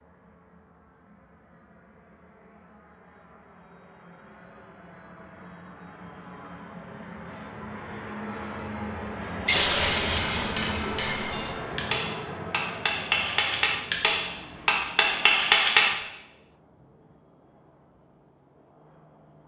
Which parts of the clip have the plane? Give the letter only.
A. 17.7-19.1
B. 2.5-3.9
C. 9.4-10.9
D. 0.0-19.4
D.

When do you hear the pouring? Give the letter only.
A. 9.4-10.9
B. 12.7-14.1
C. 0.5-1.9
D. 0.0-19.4
A.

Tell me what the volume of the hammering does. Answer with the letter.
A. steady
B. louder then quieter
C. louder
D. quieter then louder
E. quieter
C.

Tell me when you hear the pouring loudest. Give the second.
10 s.